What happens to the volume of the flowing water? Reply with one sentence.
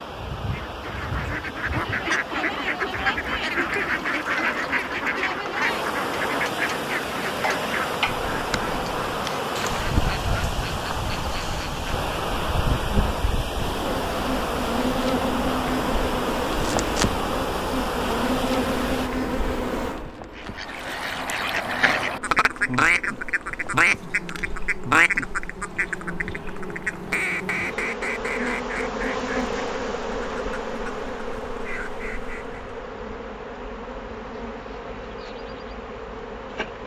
The volume of the flowing water goes up.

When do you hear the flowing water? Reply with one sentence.
The flowing water can be heard from 0.0 to 19.1 s.